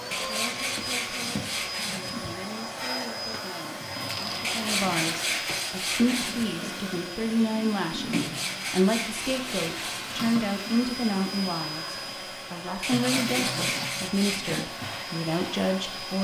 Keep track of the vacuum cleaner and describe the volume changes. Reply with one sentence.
The volume of the vacuum cleaner stays about the same.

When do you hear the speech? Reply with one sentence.
The speech can be heard from 0.2 to 16.2 s.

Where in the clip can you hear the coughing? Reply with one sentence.
You can hear the coughing from 3.0 to 3.5 s.